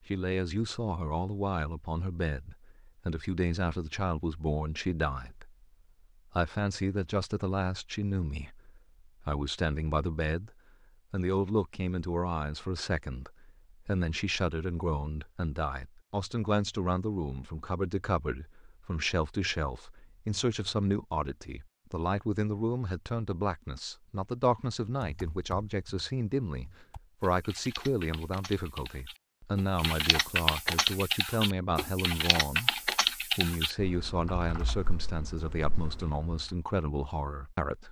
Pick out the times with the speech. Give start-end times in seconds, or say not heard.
0.1-5.7, 6.3-10.5, 11.1-37.8.